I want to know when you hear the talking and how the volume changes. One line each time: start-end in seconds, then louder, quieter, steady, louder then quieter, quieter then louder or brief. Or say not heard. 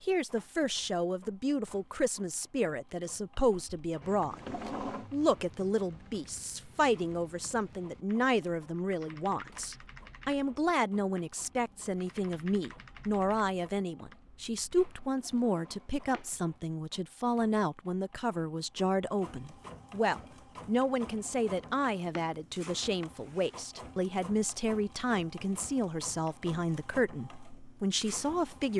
0.0-28.7 steady.